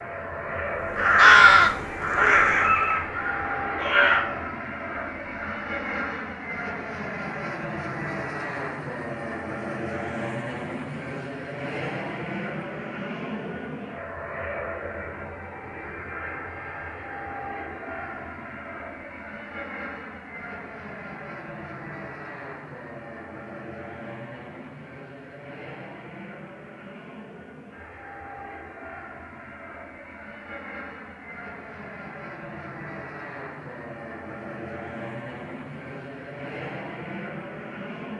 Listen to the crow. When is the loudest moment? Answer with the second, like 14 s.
1 s.